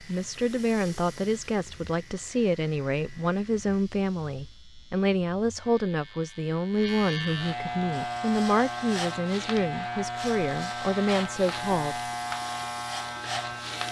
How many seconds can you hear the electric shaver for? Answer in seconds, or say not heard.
14 s.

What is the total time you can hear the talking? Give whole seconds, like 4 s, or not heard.
12 s.